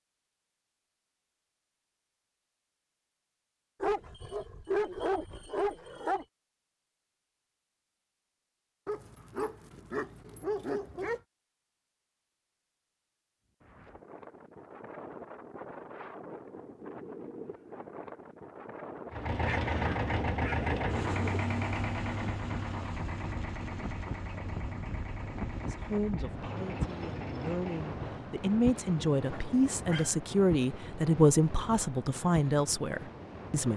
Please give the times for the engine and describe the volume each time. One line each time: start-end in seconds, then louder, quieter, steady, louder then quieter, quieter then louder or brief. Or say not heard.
19.1-27.9 quieter.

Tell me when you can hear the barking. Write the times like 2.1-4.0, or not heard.
3.8-6.2, 8.8-11.2, 19.4-20.8, 29.3-30.1.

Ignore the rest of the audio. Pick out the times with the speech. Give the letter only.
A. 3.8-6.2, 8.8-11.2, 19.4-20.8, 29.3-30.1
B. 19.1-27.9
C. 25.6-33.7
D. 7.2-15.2
C.